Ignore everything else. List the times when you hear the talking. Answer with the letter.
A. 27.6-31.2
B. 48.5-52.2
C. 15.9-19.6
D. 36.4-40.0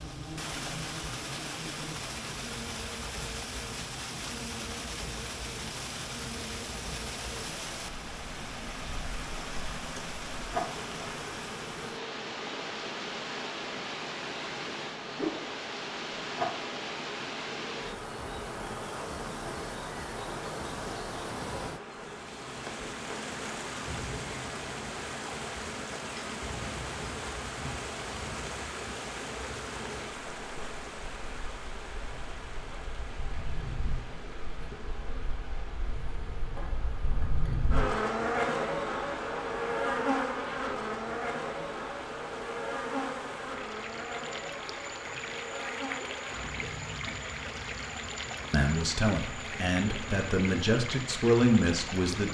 B.